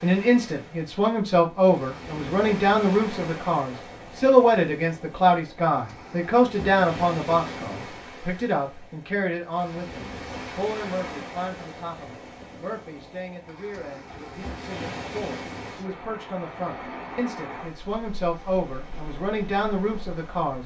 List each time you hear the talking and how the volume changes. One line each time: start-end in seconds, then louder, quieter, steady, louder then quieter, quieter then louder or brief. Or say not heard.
0.0-20.6 quieter then louder.